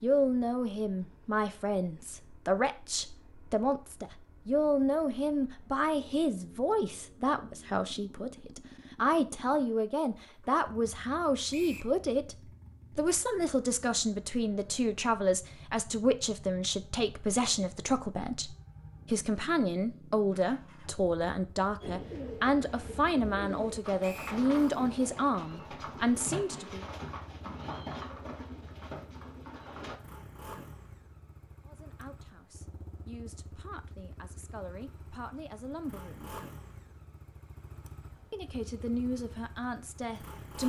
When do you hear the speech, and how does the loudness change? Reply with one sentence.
You can hear the speech from 0.0 to 26.9 s, at a steady volume; from 31.6 to 36.4 s, getting louder; and briefly from 38.3 to 40.6 s.